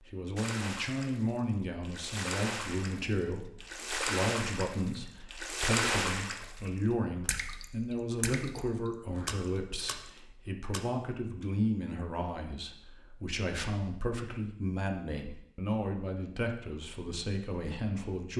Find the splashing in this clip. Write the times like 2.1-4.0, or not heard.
0.3-10.8.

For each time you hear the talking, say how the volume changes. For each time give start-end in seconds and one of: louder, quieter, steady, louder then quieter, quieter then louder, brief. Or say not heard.
0.1-18.3 steady.